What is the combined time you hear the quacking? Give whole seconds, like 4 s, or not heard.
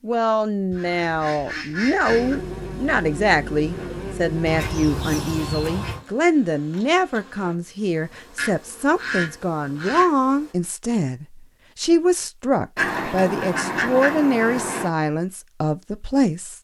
7 s.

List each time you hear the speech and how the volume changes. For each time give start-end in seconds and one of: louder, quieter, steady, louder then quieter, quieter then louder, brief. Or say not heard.
0.0-16.5 steady.